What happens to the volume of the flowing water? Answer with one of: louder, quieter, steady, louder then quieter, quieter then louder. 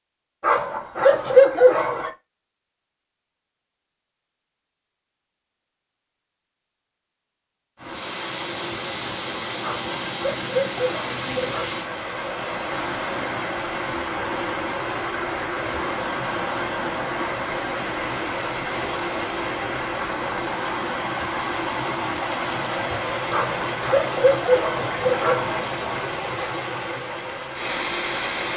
steady.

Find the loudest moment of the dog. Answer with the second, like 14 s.
2 s.